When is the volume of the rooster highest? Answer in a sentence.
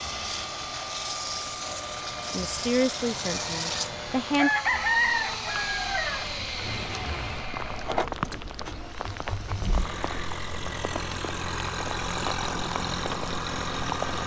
The volume of the rooster peaks at 5 seconds.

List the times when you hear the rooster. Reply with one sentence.
You can hear the rooster from 3.2 to 6.2 s.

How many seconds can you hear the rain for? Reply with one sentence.
The rain can be heard for 14 seconds in total.